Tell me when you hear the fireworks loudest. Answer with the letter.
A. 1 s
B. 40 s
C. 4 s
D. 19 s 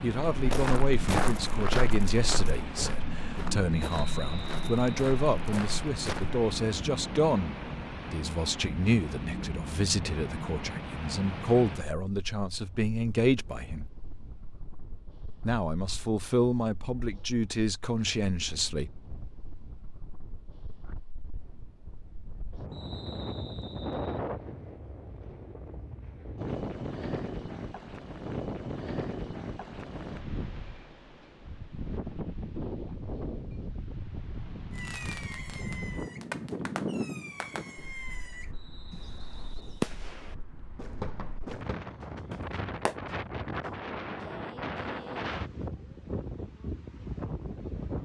B.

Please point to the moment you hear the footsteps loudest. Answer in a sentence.
The volume of the footsteps peaks at 1 second.